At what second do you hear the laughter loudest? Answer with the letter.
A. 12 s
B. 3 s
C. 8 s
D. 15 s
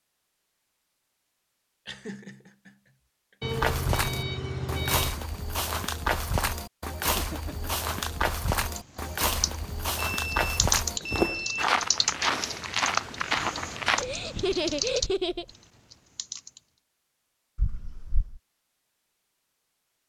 D.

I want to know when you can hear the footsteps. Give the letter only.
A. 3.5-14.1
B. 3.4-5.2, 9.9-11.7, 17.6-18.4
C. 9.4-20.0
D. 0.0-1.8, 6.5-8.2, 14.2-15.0
A.